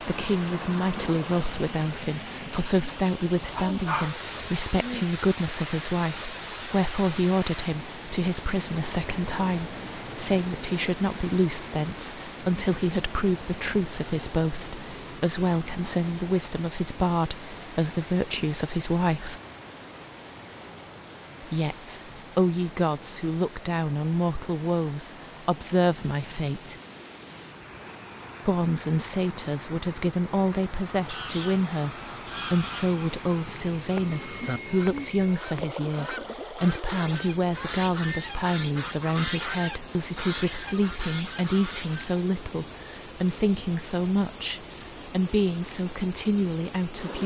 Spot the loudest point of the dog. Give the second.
4 s.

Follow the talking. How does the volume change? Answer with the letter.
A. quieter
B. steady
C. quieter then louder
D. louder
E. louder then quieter
B.